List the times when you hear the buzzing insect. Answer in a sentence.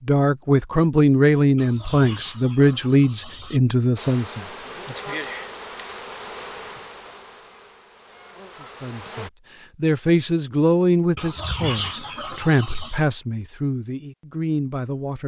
The buzzing insect can be heard from 4.0 to 9.3 s.